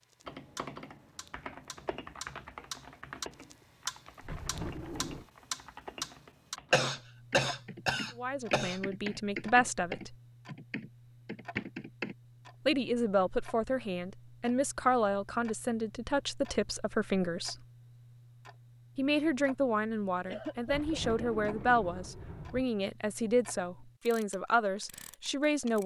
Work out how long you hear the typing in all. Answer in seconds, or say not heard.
12 s.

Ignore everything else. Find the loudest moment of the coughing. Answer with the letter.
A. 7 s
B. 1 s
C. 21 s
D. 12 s
A.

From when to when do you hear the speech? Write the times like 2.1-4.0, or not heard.
8.2-10.2, 12.7-17.6, 18.9-25.8.